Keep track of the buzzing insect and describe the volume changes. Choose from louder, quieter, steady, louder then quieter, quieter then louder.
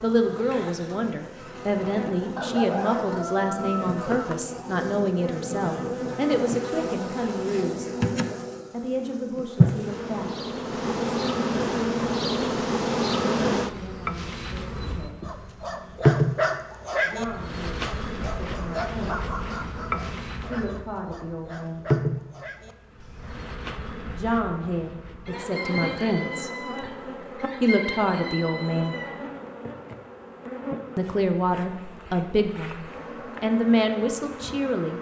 louder then quieter.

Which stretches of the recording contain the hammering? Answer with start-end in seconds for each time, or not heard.
not heard.